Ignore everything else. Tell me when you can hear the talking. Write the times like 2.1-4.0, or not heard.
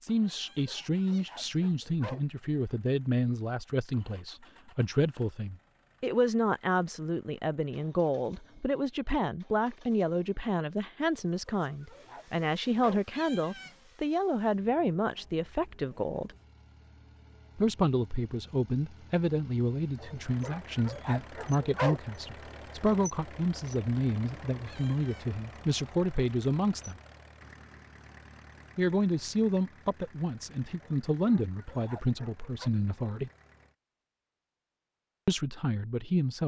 0.0-16.4, 17.6-26.9, 28.8-33.3, 35.2-36.4.